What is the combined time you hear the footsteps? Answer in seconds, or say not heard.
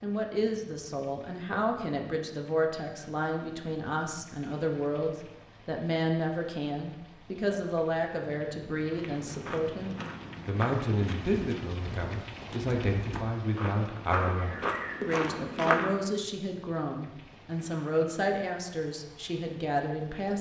7 s.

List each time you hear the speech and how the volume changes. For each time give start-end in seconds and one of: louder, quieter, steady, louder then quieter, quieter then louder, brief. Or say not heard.
0.0-20.3 steady.